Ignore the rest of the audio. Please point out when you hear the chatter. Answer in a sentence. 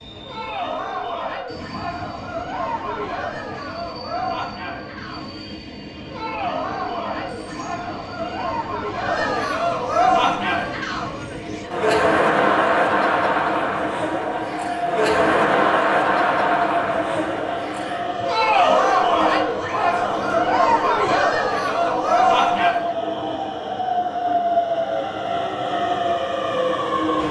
The chatter can be heard from 0.1 to 22.9 s.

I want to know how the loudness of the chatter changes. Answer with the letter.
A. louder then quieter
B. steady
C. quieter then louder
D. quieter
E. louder
E.